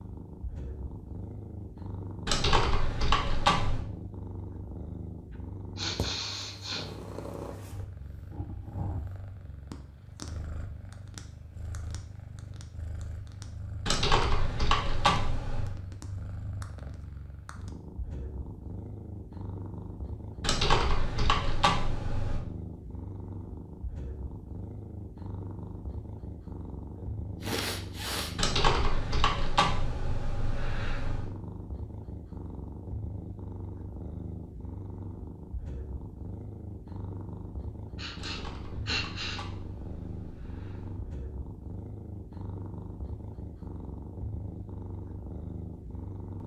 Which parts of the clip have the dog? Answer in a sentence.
The dog can't be heard in this clip.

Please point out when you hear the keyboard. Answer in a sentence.
The keyboard can be heard from 2.2 to 3.9 s, from 13.8 to 15.8 s, from 20.4 to 22.4 s, from 28.4 to 31.3 s and from 38.1 to 41.0 s.